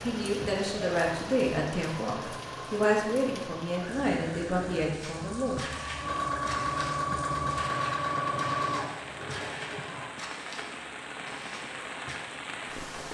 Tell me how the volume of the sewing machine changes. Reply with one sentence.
The volume of the sewing machine goes up.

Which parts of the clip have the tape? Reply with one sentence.
The tape can't be heard in this clip.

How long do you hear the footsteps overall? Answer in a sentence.
You can hear the footsteps for 7 seconds altogether.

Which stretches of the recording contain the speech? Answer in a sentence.
The speech can be heard from 0.0 to 5.6 s.